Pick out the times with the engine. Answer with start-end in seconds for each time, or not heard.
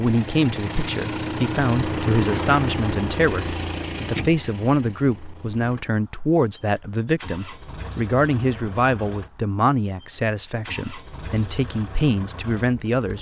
0.0-13.1.